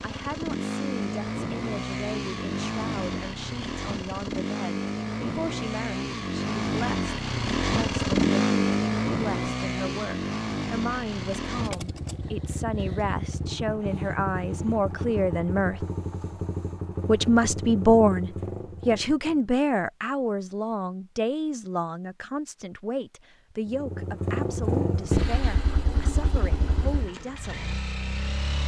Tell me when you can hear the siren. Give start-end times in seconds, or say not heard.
not heard.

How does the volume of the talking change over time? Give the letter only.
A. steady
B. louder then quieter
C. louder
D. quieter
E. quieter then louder
B.